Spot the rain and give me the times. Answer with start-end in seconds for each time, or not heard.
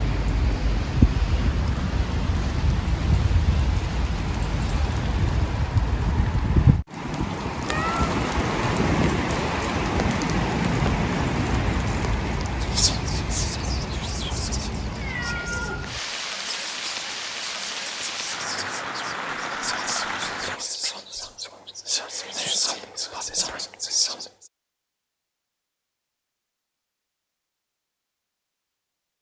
0.0-20.6.